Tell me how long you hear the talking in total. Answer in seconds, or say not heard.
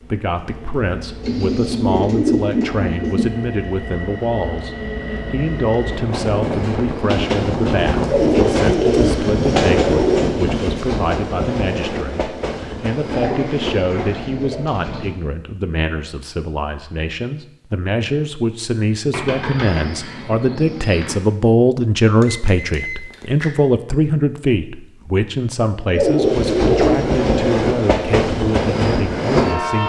30 s.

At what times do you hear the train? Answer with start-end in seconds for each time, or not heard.
0.0-14.2, 26.1-29.8.